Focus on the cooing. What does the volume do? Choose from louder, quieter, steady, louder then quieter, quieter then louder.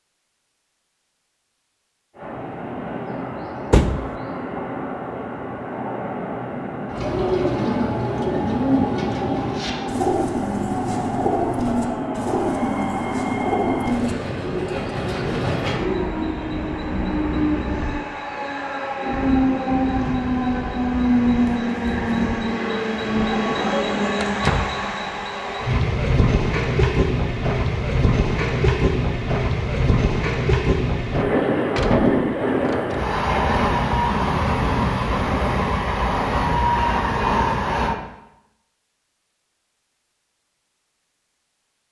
quieter.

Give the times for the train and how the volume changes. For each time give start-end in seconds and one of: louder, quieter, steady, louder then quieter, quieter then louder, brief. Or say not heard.
2.1-38.0 louder.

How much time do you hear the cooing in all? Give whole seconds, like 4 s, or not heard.
9 s.